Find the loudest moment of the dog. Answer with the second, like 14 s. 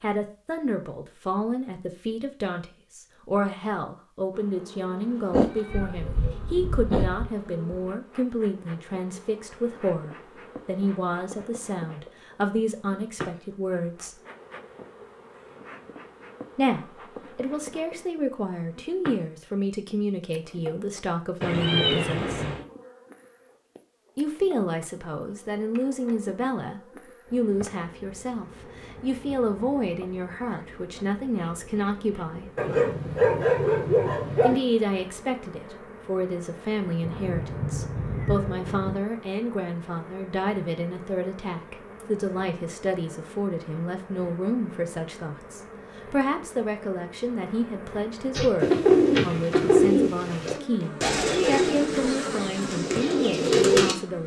33 s.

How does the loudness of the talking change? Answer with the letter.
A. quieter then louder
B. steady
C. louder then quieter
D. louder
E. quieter
B.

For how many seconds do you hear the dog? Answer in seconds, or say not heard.
2 s.